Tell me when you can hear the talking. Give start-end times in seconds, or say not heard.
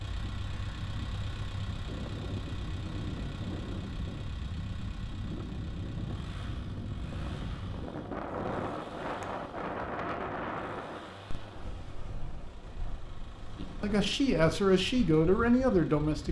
13.6-16.2.